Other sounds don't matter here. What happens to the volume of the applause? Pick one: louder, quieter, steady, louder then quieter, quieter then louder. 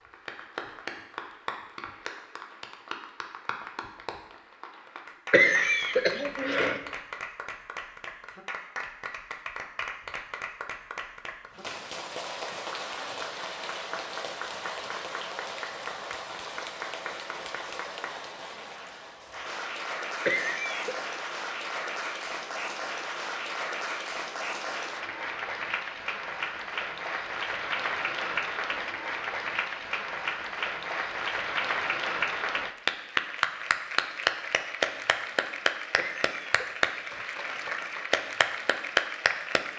louder.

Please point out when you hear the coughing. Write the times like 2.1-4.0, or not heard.
5.3-6.8, 20.2-21.0, 36.0-36.8.